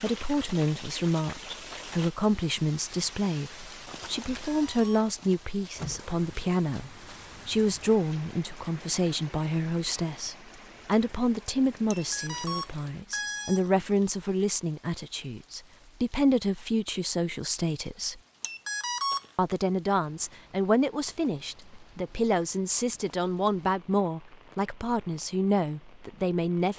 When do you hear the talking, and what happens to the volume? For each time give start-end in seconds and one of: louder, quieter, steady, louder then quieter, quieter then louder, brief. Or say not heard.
0.0-18.2 steady
19.4-26.7 steady.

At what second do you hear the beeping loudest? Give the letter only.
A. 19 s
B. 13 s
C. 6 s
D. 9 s
A.